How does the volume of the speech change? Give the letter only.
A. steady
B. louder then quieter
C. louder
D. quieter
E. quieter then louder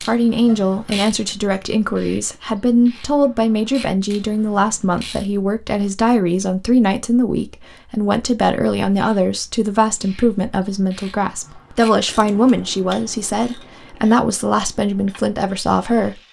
A.